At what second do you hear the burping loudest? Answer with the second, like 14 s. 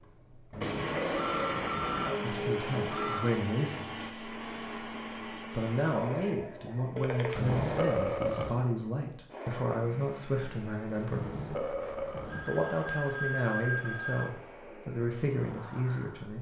8 s.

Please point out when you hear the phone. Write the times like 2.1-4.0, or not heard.
1.1-3.3, 7.0-7.5, 12.2-14.2.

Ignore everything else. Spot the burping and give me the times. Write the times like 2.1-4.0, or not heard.
0.5-2.2, 7.3-8.7, 11.1-12.6.